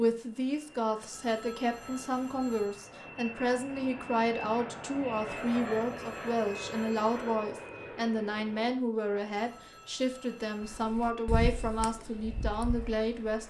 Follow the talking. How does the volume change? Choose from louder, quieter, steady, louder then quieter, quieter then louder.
steady.